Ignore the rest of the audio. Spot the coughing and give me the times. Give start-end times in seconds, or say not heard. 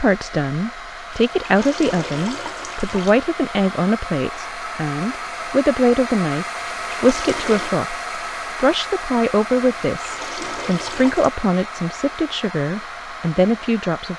not heard.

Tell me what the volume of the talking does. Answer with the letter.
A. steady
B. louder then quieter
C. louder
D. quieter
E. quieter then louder
A.